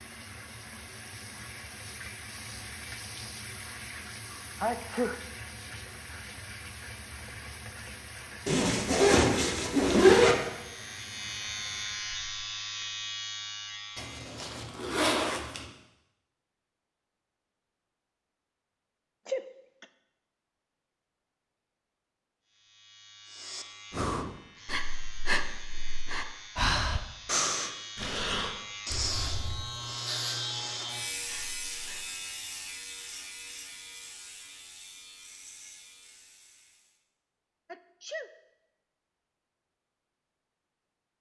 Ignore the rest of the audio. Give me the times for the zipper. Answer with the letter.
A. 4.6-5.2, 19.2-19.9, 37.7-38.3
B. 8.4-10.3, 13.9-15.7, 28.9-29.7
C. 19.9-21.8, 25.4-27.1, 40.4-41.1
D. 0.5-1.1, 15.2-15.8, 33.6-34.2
B.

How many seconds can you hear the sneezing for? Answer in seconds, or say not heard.
2 s.